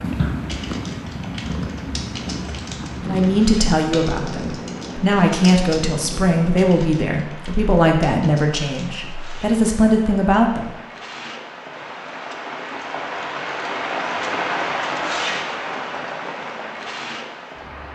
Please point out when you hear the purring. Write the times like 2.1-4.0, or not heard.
0.0-6.7.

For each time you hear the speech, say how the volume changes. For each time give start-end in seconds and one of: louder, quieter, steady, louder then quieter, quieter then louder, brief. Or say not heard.
3.0-10.7 steady.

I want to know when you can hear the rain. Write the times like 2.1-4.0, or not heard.
0.0-17.9.